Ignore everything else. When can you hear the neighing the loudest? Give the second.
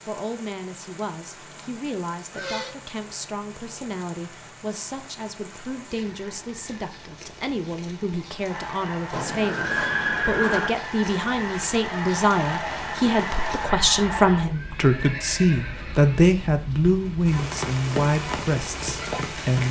10 s.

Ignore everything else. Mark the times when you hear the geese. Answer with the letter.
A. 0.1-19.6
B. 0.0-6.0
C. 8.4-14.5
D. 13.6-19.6
C.